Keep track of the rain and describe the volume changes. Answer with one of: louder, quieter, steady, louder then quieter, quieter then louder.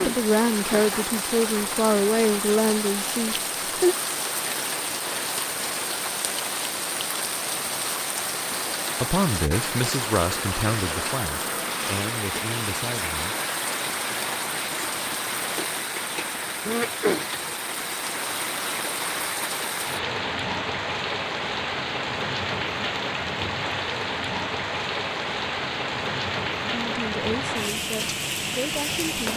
steady.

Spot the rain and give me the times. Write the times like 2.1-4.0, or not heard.
0.0-29.3.